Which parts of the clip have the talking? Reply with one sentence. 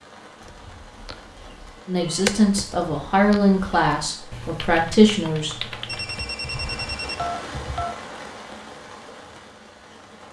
The talking can be heard from 1.9 to 5.5 s.